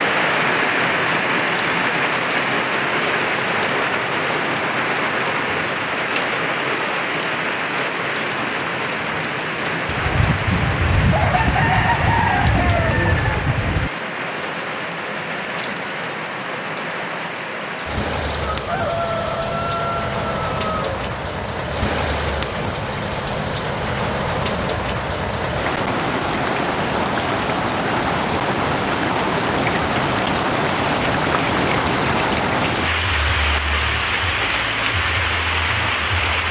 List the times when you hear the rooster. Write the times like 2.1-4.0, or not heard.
9.8-13.9, 18.5-20.9.